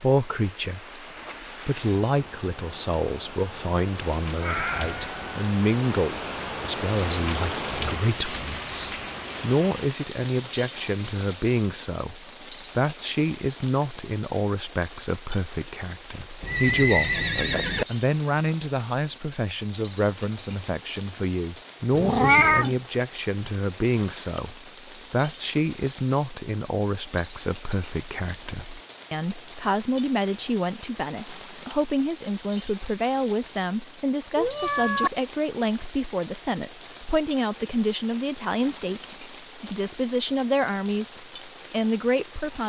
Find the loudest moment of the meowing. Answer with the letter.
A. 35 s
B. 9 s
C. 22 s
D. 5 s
C.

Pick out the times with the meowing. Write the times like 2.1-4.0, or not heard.
4.4-5.3, 21.9-22.8, 34.4-35.1.